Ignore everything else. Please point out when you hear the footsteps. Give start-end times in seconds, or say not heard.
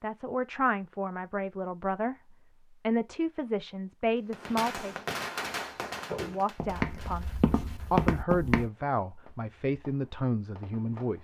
5.5-8.7.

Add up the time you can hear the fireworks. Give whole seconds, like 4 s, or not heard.
7 s.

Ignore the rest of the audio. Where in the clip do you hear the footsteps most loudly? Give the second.
8 s.